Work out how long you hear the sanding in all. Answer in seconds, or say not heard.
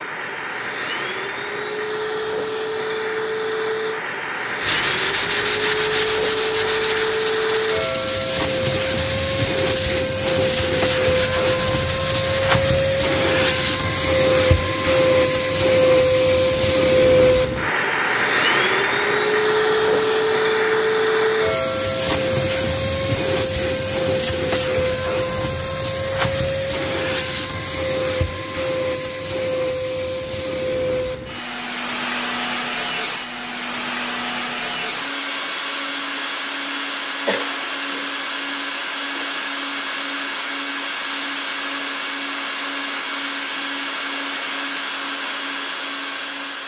8 s.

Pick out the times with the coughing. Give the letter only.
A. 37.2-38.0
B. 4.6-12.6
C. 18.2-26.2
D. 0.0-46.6
A.